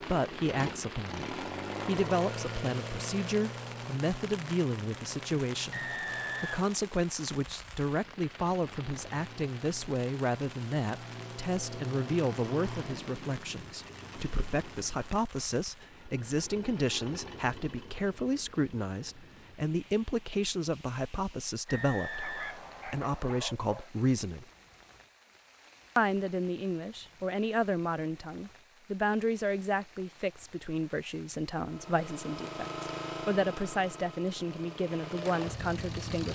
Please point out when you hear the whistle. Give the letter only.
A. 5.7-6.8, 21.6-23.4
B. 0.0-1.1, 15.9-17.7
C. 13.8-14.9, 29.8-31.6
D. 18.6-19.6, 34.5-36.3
A.